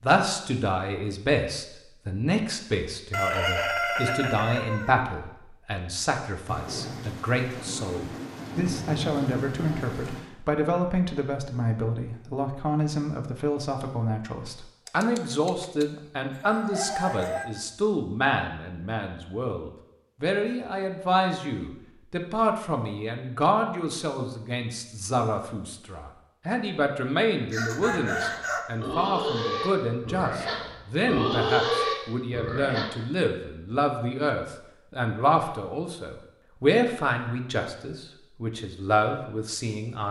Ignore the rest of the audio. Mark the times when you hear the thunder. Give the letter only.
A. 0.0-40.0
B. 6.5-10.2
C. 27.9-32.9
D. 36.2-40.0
B.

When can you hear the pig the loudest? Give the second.
32 s.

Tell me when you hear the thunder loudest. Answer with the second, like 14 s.
9 s.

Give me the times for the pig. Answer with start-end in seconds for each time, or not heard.
27.9-32.9.